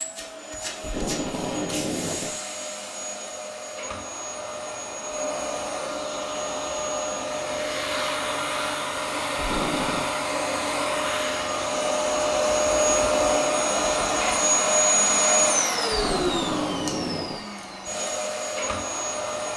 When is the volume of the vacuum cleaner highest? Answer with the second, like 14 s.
15 s.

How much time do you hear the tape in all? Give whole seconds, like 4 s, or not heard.
4 s.